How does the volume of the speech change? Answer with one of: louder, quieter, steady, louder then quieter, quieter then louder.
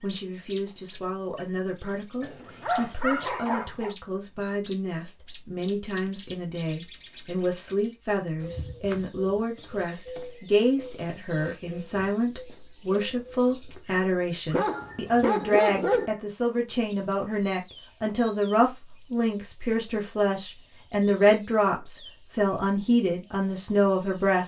louder.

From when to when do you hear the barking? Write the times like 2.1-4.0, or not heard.
2.2-4.0, 14.5-16.1.